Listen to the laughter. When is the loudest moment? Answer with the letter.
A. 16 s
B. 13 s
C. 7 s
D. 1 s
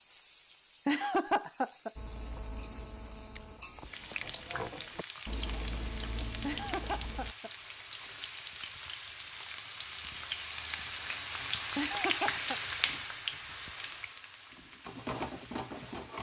D.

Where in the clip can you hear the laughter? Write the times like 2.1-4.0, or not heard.
0.8-1.9, 6.4-7.5, 11.8-12.6.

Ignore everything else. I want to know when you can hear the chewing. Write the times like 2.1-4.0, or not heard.
1.9-7.3.